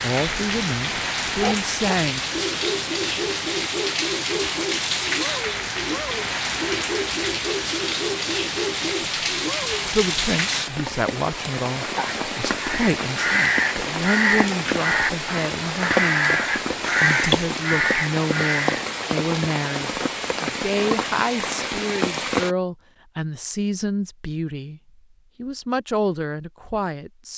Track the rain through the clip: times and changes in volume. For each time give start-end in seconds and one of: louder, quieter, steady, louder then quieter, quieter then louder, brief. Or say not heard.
0.0-22.6 steady.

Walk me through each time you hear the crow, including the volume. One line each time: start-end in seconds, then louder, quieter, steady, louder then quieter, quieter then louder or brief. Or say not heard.
12.6-18.9 steady.